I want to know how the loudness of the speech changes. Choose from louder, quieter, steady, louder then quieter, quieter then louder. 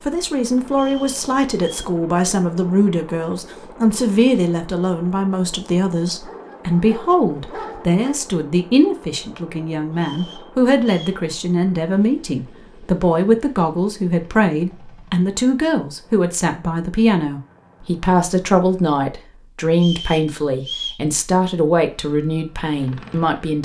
steady.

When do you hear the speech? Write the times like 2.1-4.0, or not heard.
0.1-23.6.